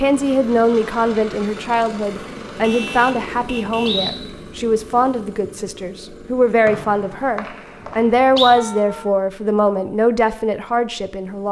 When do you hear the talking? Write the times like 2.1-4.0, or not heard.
0.0-11.4.